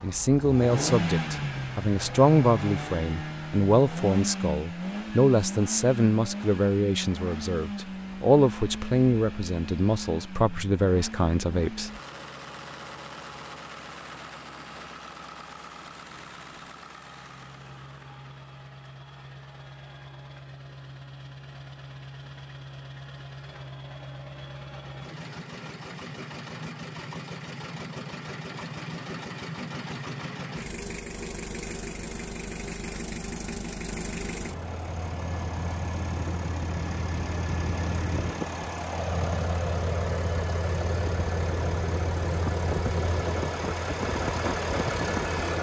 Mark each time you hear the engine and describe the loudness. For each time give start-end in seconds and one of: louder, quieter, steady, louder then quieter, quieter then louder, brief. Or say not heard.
0.0-45.5 quieter then louder.